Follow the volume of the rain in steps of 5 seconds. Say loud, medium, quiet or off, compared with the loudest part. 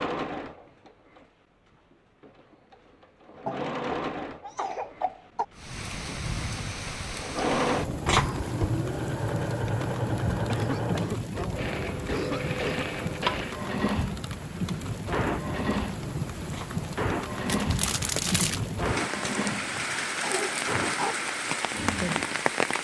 off, medium, medium, loud, loud.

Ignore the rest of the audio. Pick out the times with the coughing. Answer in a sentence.
You can hear the coughing from 3.5 to 5.5 s, from 10.5 to 12.8 s and from 20.2 to 21.1 s.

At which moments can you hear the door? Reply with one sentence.
You can't hear the door here.